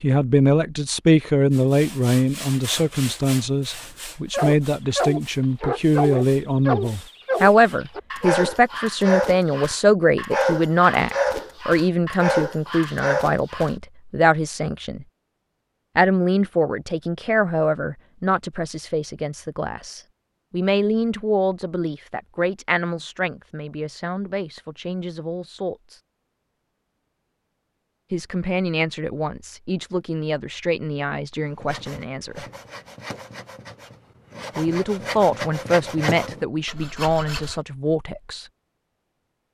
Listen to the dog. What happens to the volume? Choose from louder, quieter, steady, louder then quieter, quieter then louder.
steady.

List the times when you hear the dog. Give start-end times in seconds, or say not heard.
4.3-13.7.